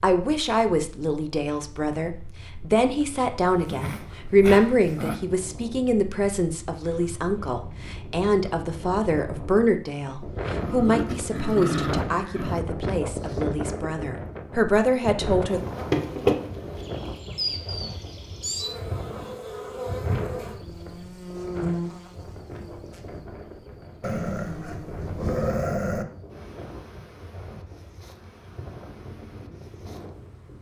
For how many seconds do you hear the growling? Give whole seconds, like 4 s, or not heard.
6 s.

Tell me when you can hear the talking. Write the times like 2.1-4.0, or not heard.
0.0-15.6.